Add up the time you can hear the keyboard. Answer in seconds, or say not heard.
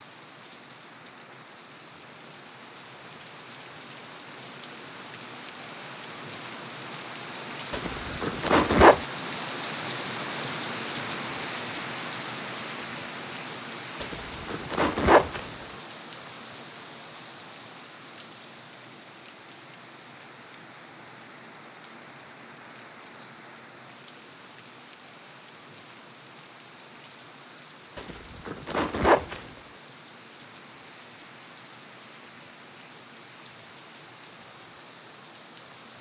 not heard.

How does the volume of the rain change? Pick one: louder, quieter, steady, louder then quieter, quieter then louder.
louder then quieter.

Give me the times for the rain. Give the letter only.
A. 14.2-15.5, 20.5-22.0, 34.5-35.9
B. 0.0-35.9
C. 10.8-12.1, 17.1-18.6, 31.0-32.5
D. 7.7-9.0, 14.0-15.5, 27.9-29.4
B.